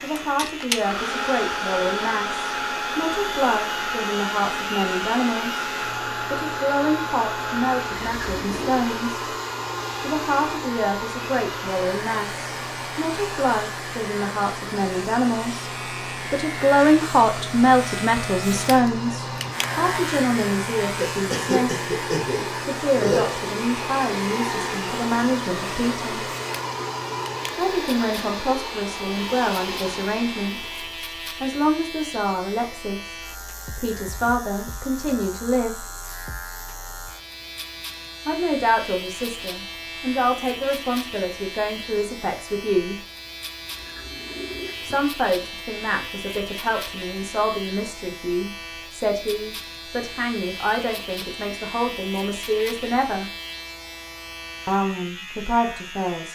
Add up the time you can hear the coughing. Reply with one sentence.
You can hear the coughing for 2 seconds altogether.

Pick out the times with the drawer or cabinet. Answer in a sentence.
You can't hear the drawer or cabinet here.